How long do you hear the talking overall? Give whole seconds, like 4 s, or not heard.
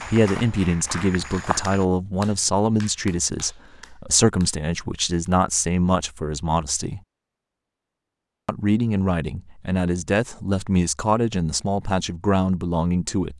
12 s.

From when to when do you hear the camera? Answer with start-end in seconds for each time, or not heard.
not heard.